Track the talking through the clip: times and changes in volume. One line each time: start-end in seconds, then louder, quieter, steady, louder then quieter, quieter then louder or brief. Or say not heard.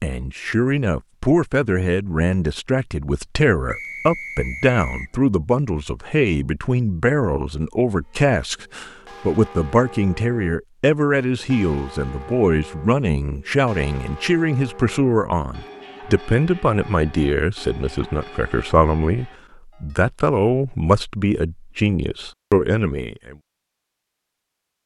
0.0-23.4 steady.